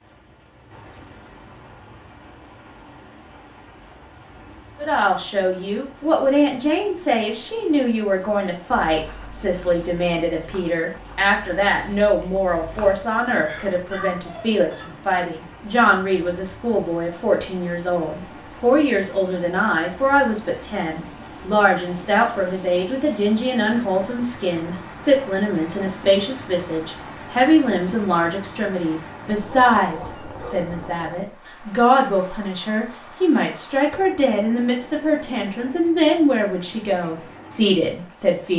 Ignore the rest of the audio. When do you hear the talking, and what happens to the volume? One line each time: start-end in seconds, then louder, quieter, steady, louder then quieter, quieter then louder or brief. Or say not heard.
4.8-38.5 steady.